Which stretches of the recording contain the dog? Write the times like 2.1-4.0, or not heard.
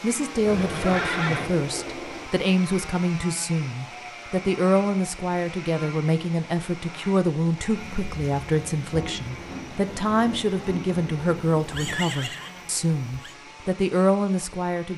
not heard.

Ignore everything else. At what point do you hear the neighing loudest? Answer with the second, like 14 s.
1 s.